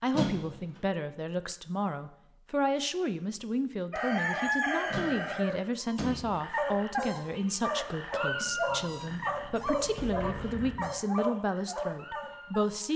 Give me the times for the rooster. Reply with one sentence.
You can hear the rooster from 3.9 to 5.6 s.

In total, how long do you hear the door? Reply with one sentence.
The door can be heard for 4 seconds in total.